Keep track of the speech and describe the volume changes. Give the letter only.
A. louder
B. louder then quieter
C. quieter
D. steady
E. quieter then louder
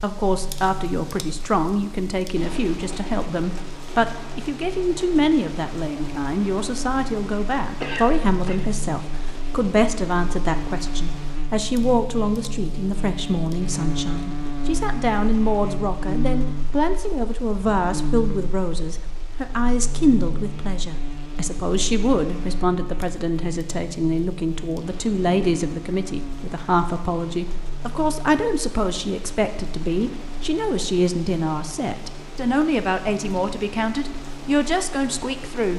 D.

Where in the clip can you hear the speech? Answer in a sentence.
You can hear the speech from 0.0 to 35.7 s.